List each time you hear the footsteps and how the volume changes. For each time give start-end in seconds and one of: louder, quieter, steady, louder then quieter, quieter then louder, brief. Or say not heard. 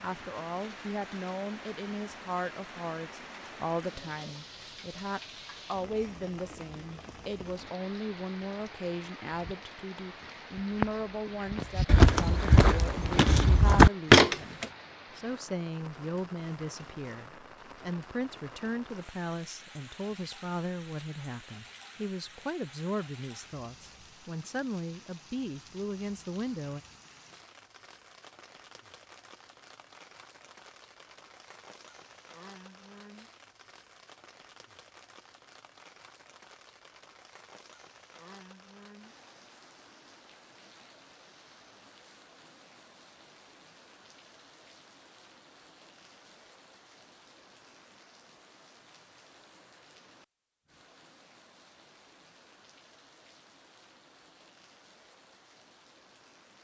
9.3-14.7 louder.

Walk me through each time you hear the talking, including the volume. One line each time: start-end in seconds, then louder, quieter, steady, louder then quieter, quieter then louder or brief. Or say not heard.
0.0-26.8 steady.